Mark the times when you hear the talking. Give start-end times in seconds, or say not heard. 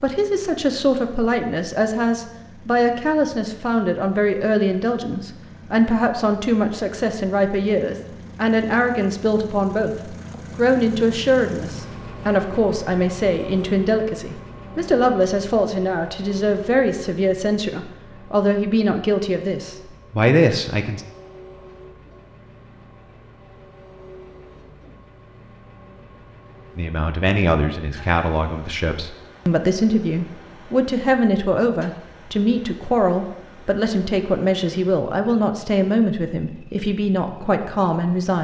0.0-21.1, 26.8-38.3.